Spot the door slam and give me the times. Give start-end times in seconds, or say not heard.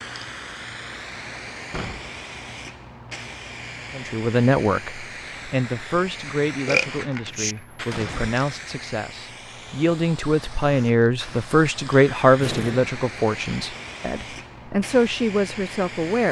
1.7-2.1, 7.2-8.7, 12.3-12.9.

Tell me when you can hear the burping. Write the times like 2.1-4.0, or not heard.
6.7-7.5.